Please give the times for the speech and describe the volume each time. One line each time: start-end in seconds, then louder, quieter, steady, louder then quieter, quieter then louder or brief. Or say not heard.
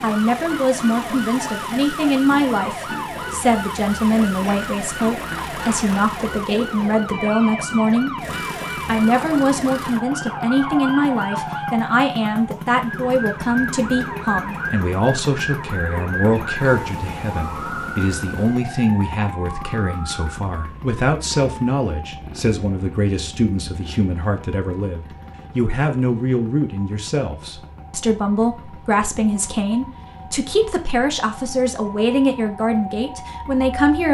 0.0-34.0 steady.